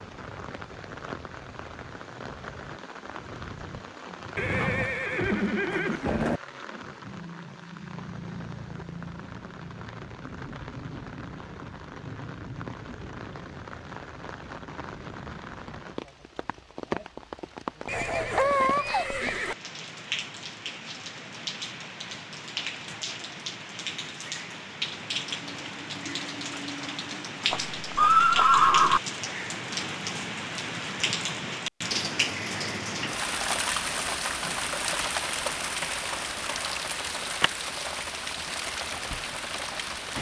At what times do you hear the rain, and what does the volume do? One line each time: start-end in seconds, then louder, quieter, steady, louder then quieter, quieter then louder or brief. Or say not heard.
0.0-40.1 louder.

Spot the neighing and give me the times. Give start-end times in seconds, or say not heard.
4.3-6.4, 17.9-19.6, 27.5-29.0.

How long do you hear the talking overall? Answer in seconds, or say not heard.
not heard.